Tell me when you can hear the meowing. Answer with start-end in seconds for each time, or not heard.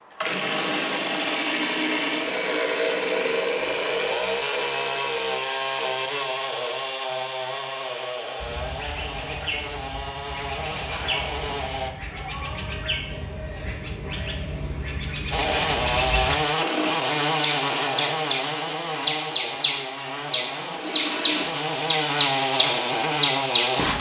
not heard.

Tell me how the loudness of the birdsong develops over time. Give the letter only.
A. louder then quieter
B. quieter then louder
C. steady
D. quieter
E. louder
E.